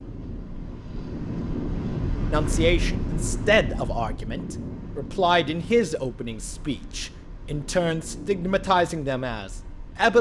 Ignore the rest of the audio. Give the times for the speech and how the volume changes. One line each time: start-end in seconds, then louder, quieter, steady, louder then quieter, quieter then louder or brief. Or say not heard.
2.3-10.1 steady.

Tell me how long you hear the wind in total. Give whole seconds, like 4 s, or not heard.
10 s.